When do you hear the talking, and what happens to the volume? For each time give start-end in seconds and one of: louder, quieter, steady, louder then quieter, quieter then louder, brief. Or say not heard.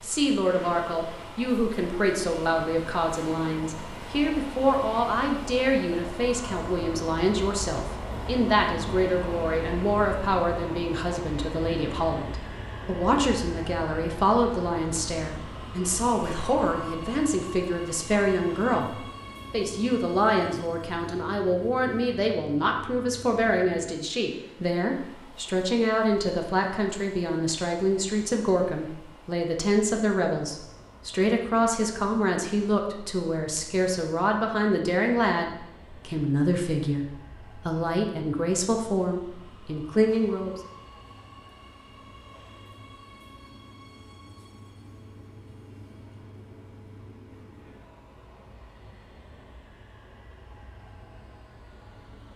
0.0-40.5 steady.